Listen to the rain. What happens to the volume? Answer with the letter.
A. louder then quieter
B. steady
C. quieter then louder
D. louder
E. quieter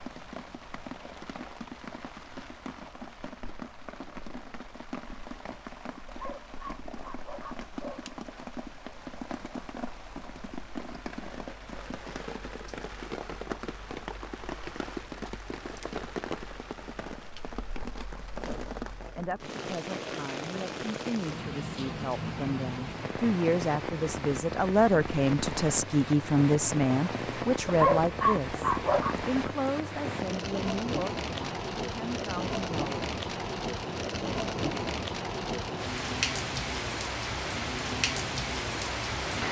D.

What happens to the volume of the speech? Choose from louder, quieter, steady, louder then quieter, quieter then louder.
louder then quieter.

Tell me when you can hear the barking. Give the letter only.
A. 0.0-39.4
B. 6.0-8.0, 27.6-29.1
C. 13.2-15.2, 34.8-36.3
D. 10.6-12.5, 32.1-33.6
B.